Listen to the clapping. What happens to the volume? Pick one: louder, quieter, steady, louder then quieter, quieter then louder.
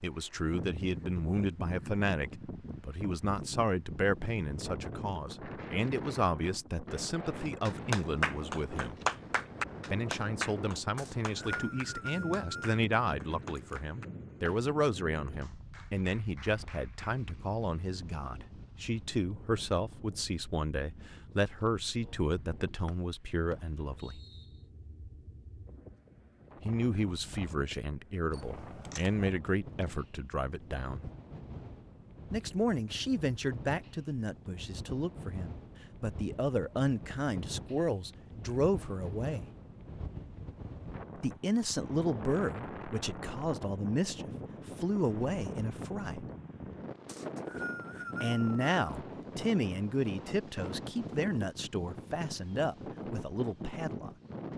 quieter.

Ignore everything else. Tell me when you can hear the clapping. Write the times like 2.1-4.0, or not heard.
7.7-17.1.